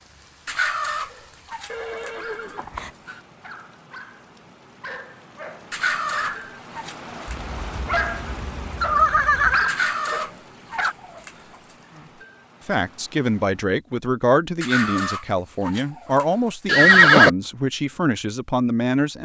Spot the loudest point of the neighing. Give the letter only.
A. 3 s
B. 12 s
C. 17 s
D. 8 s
C.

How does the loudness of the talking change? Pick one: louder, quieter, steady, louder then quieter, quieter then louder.
steady.